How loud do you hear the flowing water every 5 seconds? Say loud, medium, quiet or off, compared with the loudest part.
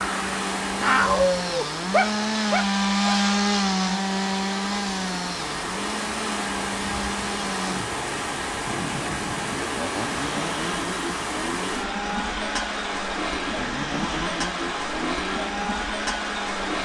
medium, loud, loud, loud.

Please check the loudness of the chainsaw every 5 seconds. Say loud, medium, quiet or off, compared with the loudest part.
loud, medium, medium, medium.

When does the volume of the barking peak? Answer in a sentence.
The loudest moment of the barking is at 1 second.